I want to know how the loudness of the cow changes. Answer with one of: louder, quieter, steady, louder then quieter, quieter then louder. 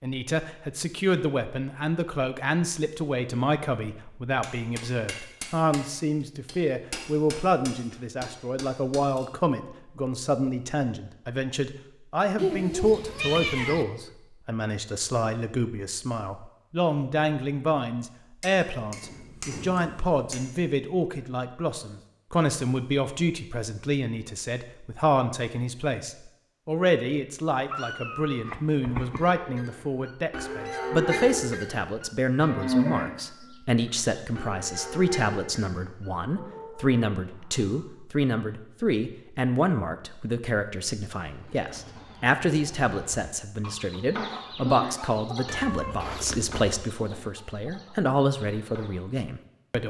louder then quieter.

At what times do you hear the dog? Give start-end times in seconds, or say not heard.
not heard.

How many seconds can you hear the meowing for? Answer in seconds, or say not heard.
4 s.